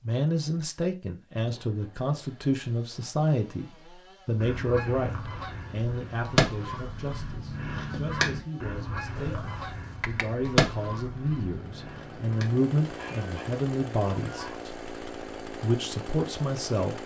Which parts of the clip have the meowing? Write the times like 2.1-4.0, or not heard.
9.2-10.6.